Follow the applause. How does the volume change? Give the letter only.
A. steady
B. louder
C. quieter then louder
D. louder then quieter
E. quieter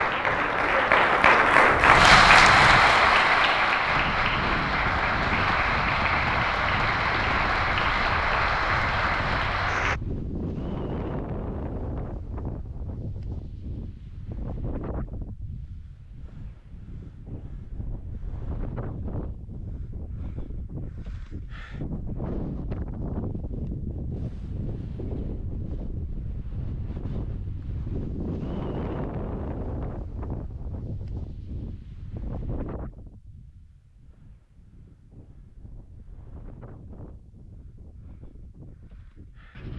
E.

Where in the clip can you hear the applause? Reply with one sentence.
The applause can be heard from 0.0 to 10.0 s.